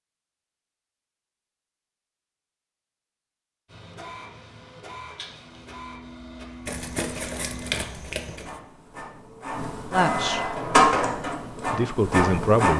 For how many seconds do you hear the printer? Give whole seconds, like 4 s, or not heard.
9 s.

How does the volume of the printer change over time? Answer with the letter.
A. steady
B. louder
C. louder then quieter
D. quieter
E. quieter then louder
B.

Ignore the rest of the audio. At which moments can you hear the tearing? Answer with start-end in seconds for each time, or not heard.
6.7-8.6.